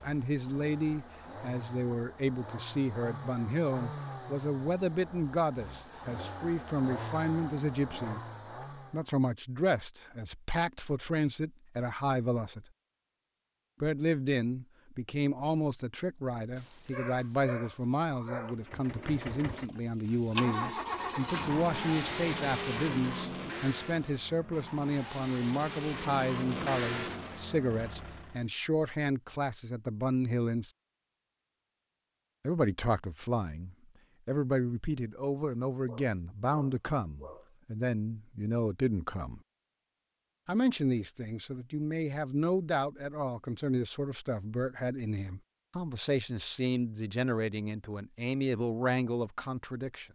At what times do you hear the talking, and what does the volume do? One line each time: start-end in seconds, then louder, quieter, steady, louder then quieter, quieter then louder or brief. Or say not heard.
0.0-12.7 steady
13.8-30.7 steady
32.5-39.4 steady
40.5-50.0 steady.